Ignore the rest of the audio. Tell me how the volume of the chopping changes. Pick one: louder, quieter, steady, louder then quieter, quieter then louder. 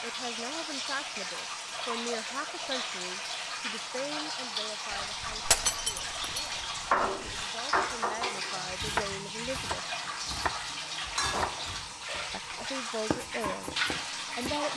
quieter then louder.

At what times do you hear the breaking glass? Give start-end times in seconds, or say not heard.
5.5-6.5.